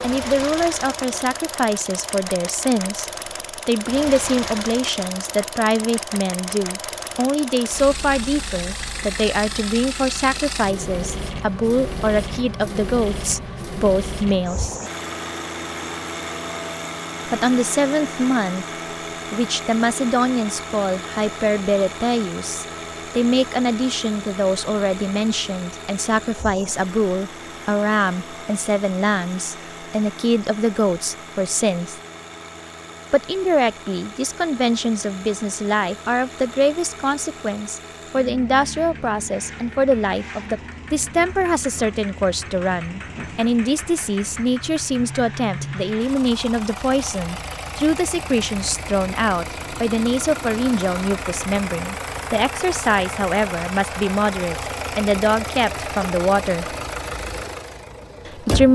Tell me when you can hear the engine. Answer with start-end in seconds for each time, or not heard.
0.0-58.7.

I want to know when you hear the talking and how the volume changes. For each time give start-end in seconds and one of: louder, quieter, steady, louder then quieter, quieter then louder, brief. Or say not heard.
0.0-14.8 steady
17.2-18.6 brief
19.3-32.0 steady
33.1-56.6 steady
58.2-58.7 brief.